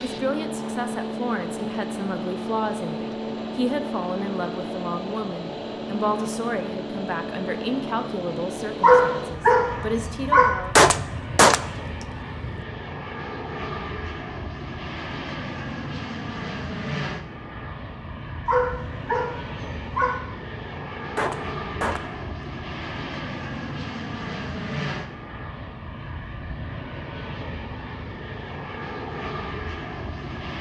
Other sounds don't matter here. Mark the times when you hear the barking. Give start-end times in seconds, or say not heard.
8.8-10.5, 18.4-20.1.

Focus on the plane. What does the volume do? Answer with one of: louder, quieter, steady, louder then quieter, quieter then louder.
steady.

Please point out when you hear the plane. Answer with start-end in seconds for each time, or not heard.
0.0-30.5.